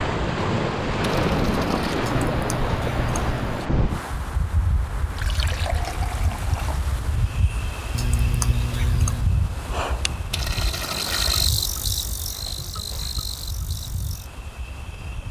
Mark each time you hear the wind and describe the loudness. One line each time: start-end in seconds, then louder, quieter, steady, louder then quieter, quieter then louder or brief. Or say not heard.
0.0-15.2 quieter.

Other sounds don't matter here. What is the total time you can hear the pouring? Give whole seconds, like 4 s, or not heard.
4 s.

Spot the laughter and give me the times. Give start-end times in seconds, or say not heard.
2.0-3.7, 7.9-9.3.